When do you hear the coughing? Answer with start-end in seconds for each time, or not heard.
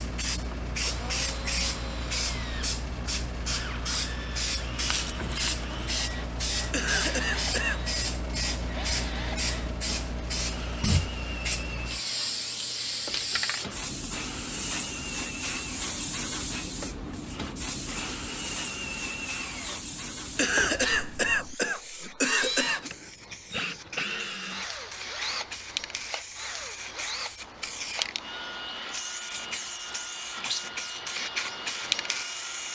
6.7-7.8, 20.4-22.9.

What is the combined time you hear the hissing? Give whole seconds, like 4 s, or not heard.
33 s.